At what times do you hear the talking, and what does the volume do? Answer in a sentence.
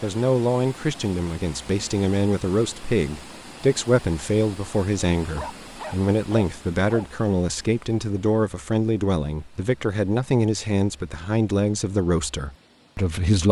You can hear the talking from 0.0 to 13.4 s, at a steady volume.